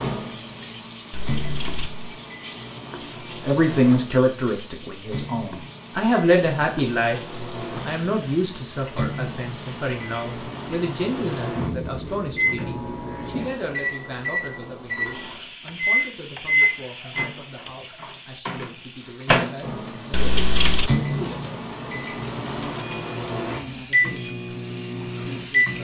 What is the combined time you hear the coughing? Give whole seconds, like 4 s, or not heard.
2 s.